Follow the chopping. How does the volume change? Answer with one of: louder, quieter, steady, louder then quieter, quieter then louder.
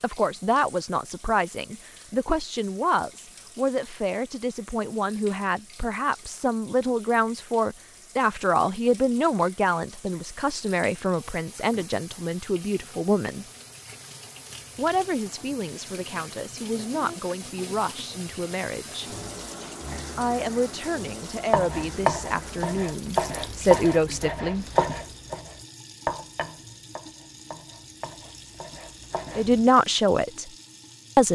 quieter.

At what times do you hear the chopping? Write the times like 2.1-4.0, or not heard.
21.5-29.7.